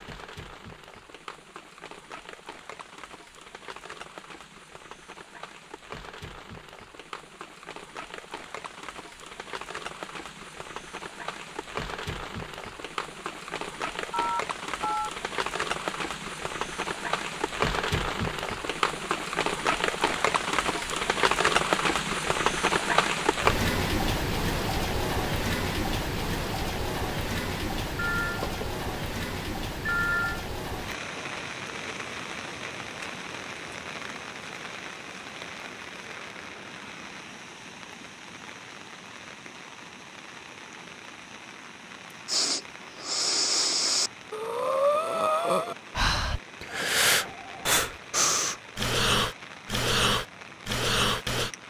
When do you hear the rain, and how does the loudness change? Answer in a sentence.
You can hear the rain from 0.0 to 51.6 s, getting louder then quieter.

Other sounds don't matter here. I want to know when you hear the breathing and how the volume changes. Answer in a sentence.
The breathing can be heard from 42.2 to 51.5 s, at a steady volume.